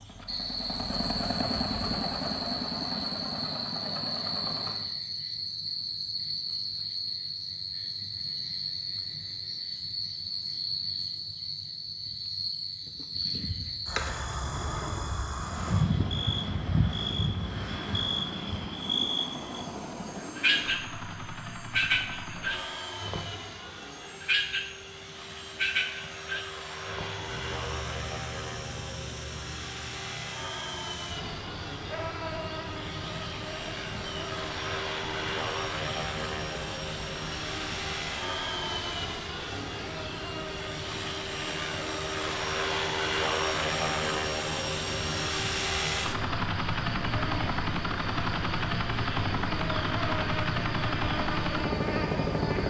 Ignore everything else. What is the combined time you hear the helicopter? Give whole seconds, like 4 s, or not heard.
43 s.